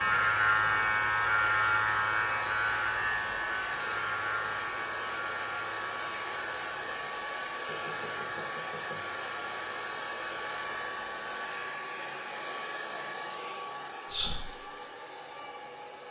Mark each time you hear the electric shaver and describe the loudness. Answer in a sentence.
The electric shaver can be heard from 0.0 to 11.7 s, getting quieter.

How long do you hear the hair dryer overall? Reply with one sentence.
The hair dryer can be heard for 16 seconds in total.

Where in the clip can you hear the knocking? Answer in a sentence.
The knocking can be heard from 7.7 to 9.1 s.